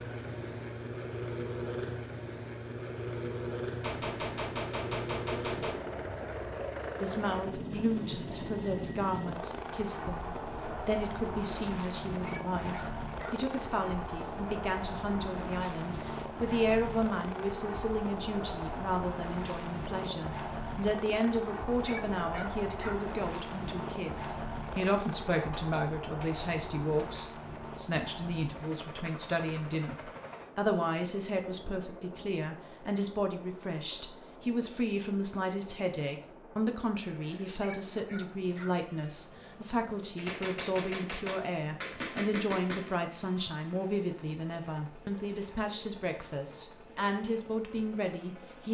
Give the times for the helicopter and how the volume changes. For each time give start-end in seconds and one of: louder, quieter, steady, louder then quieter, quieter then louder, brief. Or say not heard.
0.0-48.6 quieter.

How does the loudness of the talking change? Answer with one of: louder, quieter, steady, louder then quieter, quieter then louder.
steady.